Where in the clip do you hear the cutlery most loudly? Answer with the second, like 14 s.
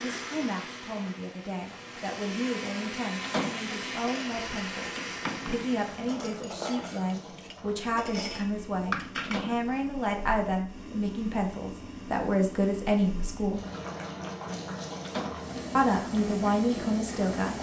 9 s.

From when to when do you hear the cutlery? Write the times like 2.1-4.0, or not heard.
3.9-9.4.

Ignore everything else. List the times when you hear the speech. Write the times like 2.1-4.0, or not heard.
0.0-13.6, 15.8-17.5.